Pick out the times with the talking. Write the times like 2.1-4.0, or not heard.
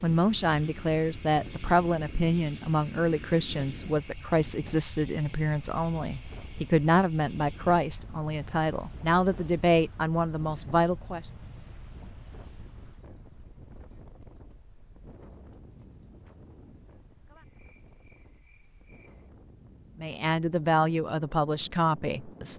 0.0-11.2, 20.0-22.5.